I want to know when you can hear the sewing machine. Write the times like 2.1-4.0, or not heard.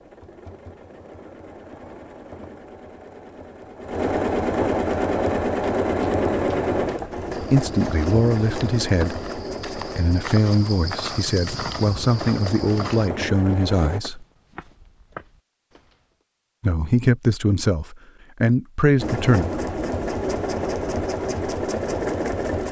0.0-14.0, 18.9-22.6.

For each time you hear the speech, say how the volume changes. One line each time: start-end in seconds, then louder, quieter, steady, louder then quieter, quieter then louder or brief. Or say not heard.
7.5-14.2 quieter then louder
16.6-19.4 brief.